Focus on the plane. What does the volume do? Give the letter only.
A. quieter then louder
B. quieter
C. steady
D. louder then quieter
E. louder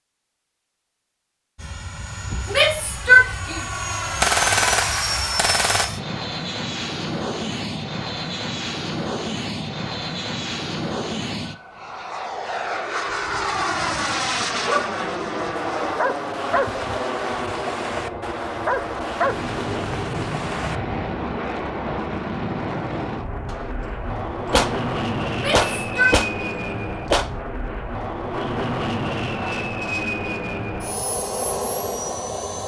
C.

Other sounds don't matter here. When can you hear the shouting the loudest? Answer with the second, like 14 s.
3 s.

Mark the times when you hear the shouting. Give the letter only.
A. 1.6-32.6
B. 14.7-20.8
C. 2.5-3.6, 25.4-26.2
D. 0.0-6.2
C.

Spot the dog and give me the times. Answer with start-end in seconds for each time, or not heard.
14.7-20.8.